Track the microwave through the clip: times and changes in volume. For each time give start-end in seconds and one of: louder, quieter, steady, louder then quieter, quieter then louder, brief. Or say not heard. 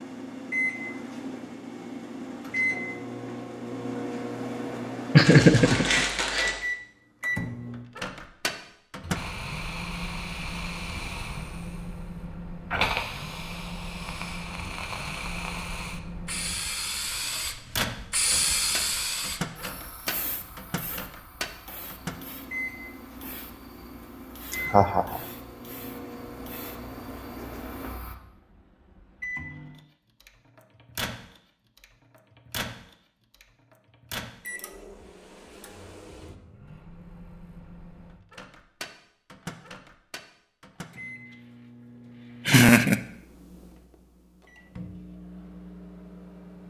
0.0-46.6 quieter.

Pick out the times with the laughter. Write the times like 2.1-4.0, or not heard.
5.2-6.5, 24.5-25.2, 42.5-43.0.